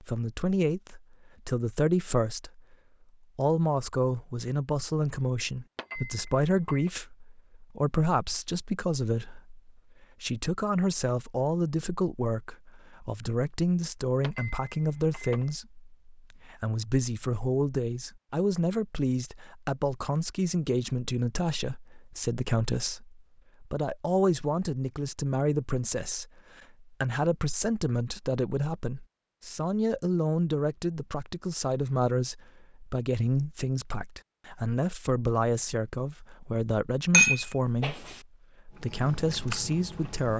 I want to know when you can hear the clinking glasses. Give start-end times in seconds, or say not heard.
5.8-6.9, 14.2-15.5, 37.1-38.1.